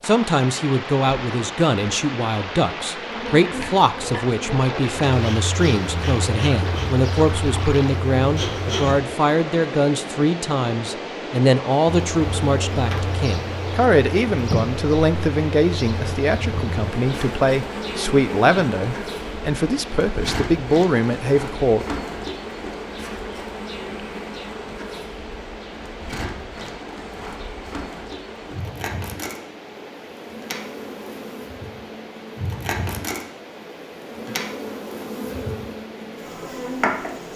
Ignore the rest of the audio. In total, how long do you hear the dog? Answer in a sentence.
The dog can't be heard in this clip.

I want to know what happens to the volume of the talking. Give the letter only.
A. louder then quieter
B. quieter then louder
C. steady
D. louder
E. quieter
C.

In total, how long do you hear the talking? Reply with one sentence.
You can hear the talking for 22 seconds altogether.